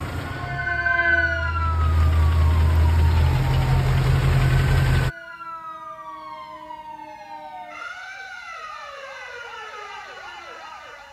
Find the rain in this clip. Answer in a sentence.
The rain can't be heard in this clip.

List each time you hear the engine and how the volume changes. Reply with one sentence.
The engine can be heard from 0.0 to 5.1 s, getting louder.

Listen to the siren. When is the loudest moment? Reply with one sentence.
The volume of the siren peaks at 1 second.